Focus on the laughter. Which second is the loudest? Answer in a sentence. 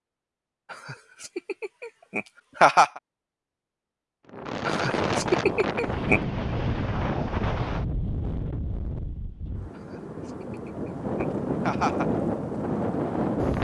The volume of the laughter peaks at 3 seconds.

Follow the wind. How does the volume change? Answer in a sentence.
The loudness of the wind goes down, then up.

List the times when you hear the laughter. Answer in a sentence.
The laughter can be heard from 0.7 to 3.0 s, from 4.7 to 6.2 s and from 9.8 to 12.1 s.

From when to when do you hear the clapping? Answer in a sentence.
You can't hear the clapping here.